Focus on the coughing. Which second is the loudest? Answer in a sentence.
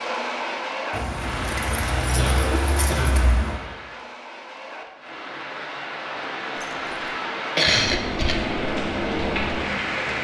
The loudest moment of the coughing is at 8 seconds.